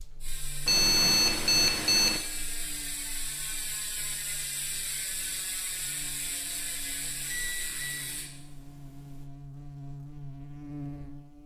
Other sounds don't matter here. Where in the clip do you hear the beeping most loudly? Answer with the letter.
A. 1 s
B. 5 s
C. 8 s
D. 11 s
A.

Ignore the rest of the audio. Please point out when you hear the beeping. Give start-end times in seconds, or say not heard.
0.7-2.2, 7.3-9.2.